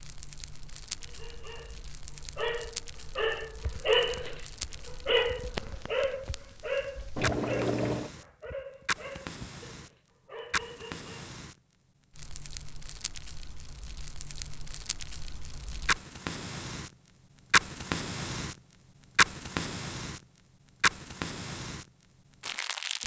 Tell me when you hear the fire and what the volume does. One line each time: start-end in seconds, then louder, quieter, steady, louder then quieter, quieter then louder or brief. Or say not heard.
0.0-23.0 louder.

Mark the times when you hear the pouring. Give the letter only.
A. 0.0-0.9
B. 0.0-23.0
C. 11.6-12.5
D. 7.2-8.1
D.